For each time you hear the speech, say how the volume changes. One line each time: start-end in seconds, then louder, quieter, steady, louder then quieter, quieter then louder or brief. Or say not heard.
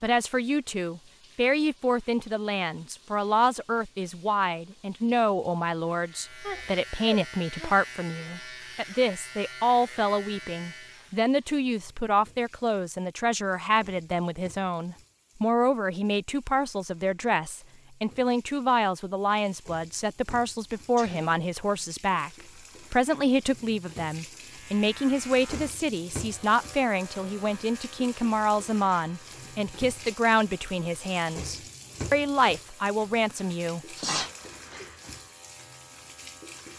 0.0-34.0 steady.